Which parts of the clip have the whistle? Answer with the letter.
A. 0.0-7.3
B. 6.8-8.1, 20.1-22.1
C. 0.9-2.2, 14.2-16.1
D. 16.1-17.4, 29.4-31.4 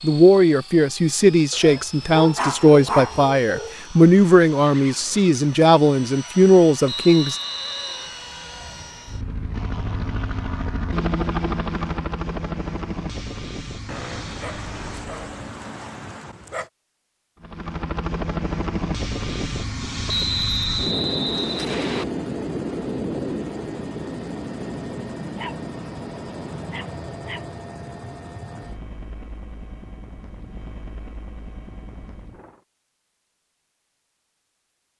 B.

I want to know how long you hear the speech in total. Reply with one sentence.
The speech can be heard for 7 seconds in total.